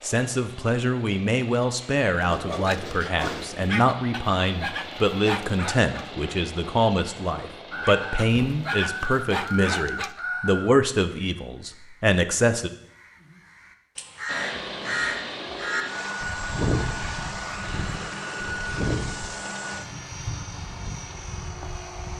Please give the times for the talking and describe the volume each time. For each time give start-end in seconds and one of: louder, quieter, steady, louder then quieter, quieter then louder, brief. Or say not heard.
0.0-12.7 steady.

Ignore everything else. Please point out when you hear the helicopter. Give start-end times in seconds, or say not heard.
0.0-9.2, 14.2-22.1.